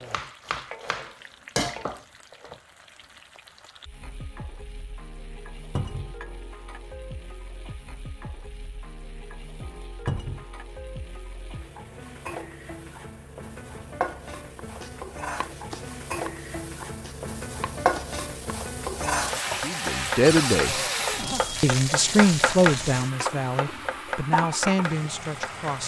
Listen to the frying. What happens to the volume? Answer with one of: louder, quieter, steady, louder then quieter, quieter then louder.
louder.